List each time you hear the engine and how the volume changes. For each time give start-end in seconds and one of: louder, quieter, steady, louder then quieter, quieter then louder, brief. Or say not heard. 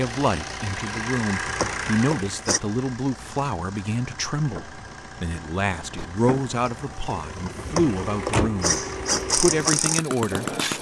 0.0-10.7 quieter then louder.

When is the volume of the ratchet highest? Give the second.
9 s.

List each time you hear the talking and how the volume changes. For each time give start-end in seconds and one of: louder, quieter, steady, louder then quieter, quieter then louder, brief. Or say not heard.
0.0-8.8 steady
9.3-10.7 brief.